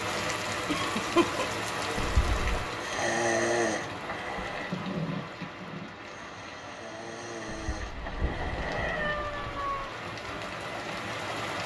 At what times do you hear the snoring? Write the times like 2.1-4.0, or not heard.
2.8-9.2.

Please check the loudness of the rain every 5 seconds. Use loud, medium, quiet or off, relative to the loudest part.
loud, medium, loud.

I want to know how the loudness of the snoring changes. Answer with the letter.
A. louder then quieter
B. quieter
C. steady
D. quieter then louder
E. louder
D.